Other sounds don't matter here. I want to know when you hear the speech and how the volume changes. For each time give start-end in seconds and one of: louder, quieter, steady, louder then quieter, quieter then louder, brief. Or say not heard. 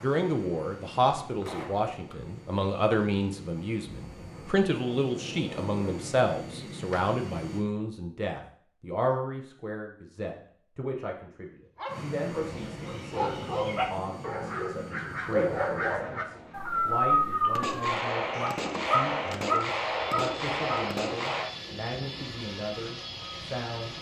0.0-23.9 quieter.